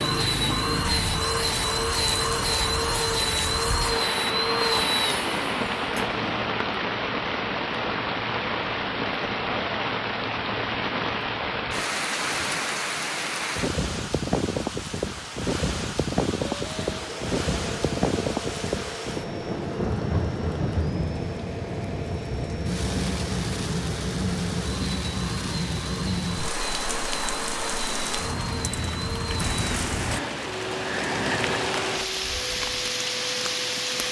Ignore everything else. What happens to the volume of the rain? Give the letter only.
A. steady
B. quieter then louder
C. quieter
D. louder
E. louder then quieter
A.